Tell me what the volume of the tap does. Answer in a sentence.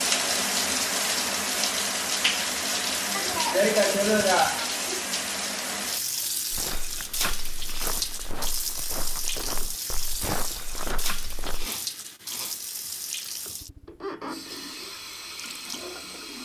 The volume of the tap goes down.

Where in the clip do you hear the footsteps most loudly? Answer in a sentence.
The loudest moment of the footsteps is at 10 seconds.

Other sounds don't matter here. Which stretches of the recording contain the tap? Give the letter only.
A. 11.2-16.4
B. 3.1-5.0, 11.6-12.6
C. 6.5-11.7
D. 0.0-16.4
D.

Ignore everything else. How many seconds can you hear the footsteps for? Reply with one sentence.
You can hear the footsteps for 5 seconds altogether.